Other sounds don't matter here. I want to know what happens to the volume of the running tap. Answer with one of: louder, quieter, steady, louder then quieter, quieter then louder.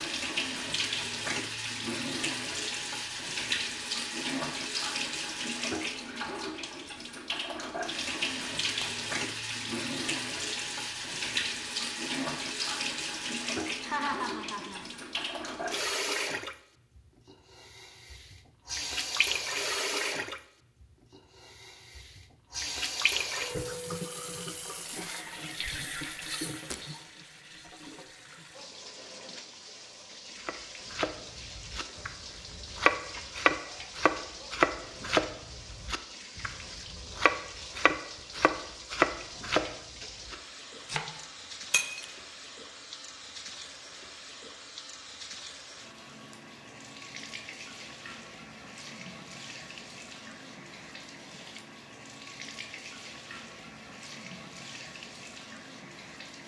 quieter.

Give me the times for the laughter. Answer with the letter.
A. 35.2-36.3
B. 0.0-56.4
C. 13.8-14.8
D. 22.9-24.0
C.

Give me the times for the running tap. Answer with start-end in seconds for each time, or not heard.
0.0-56.4.